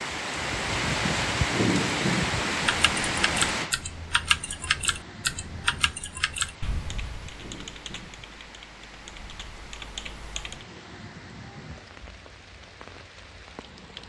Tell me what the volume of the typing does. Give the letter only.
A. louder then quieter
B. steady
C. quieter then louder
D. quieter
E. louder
D.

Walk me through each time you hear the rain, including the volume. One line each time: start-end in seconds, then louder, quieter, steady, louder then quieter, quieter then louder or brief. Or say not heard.
0.0-14.0 quieter.